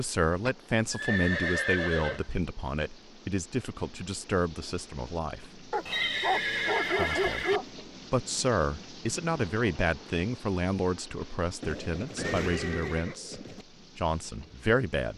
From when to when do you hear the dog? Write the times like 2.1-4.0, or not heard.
5.7-7.7.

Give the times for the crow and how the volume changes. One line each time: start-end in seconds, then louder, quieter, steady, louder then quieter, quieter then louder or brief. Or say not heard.
not heard.